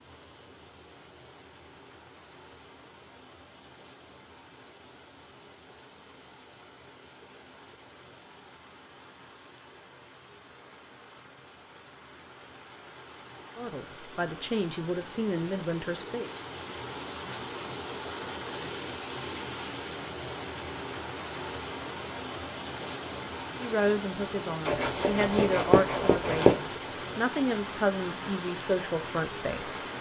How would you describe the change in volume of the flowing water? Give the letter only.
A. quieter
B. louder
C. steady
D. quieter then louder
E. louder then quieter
B.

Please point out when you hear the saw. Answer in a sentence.
The saw can be heard from 24.6 to 26.6 s.